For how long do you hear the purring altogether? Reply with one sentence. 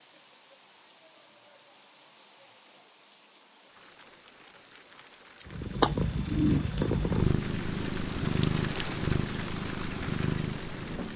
You can hear the purring for 6 seconds altogether.